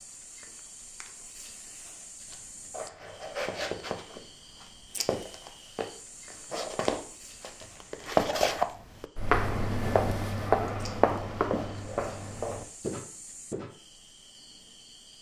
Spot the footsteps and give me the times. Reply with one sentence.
You can hear the footsteps from 2.2 to 13.7 s.